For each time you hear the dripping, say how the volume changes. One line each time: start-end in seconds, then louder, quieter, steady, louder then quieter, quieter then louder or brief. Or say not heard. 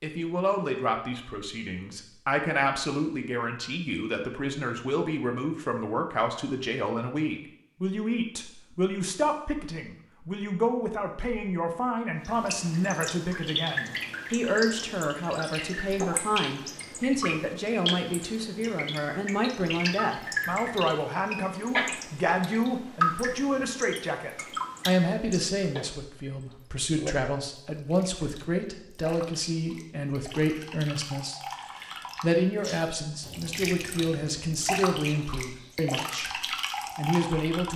12.2-37.7 quieter then louder.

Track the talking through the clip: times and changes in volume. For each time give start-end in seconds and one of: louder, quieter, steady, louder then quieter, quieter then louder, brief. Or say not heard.
0.0-37.7 steady.